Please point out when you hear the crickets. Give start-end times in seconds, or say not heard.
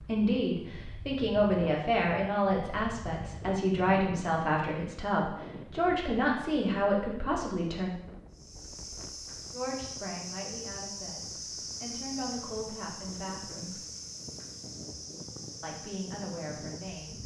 8.3-17.2.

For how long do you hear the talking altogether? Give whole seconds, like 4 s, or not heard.
14 s.